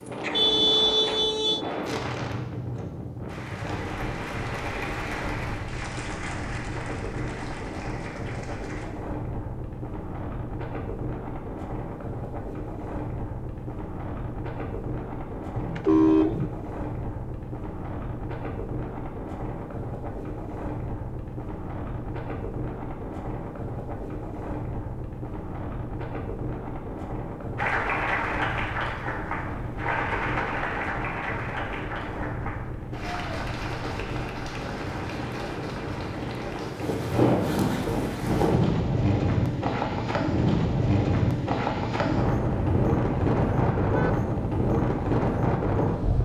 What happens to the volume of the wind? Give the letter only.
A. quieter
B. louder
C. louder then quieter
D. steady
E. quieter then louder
B.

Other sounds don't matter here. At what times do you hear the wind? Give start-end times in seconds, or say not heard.
0.0-46.2.